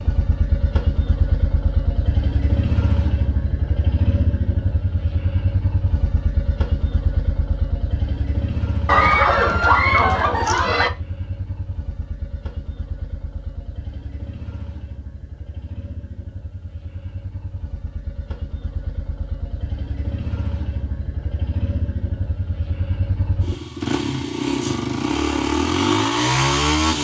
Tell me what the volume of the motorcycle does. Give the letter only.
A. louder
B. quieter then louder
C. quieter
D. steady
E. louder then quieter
B.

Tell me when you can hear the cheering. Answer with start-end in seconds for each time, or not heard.
8.8-10.9.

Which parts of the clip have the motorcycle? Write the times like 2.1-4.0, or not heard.
0.0-27.0.